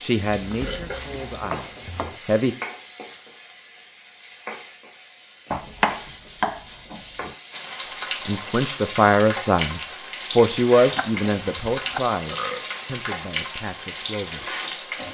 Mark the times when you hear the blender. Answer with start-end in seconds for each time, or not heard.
not heard.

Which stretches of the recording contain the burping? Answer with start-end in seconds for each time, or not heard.
0.6-1.2, 12.3-12.8.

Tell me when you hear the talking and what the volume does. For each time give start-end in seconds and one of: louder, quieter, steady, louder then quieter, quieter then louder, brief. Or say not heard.
0.0-2.5 brief
8.2-14.6 quieter.